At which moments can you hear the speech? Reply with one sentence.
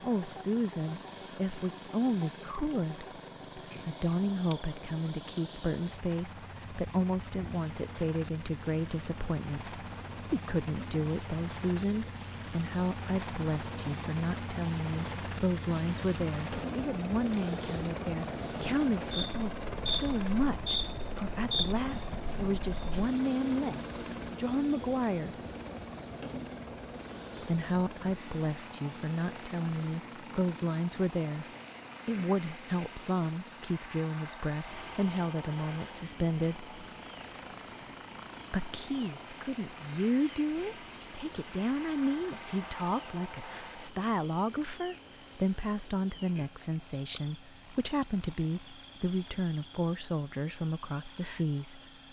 The speech can be heard from 0.0 to 25.4 s, from 27.4 to 31.4 s, from 32.0 to 36.7 s and from 38.5 to 51.8 s.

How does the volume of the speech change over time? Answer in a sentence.
The volume of the speech stays about the same.